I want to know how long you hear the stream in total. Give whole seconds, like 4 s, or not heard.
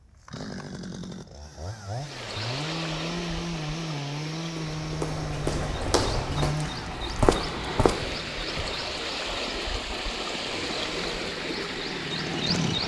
11 s.